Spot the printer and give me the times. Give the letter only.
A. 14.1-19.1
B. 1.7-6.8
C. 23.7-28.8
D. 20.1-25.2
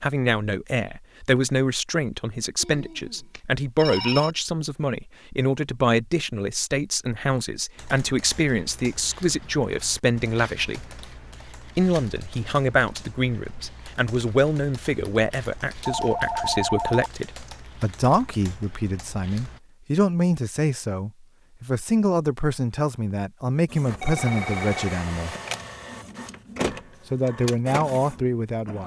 C.